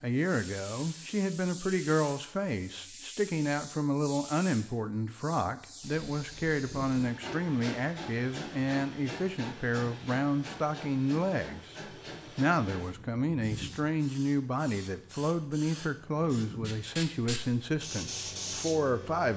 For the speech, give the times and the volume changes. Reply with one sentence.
The speech can be heard from 0.0 to 11.8 s, at a steady volume; and from 12.3 to 19.3 s, at a steady volume.